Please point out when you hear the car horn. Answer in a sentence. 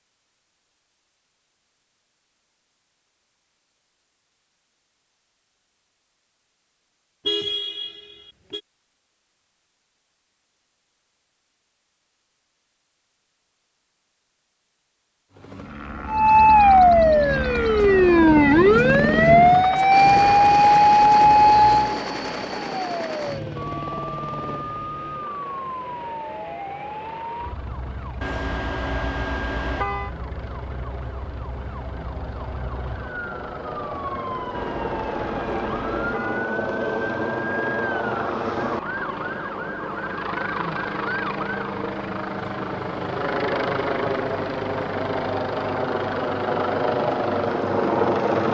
You can hear the car horn from 7.2 to 8.6 s, from 28.2 to 30.1 s and from 34.5 to 36.5 s.